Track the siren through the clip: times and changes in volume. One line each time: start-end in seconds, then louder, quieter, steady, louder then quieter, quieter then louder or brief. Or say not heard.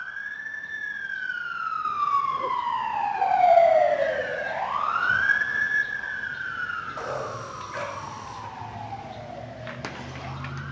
0.0-10.6 louder then quieter.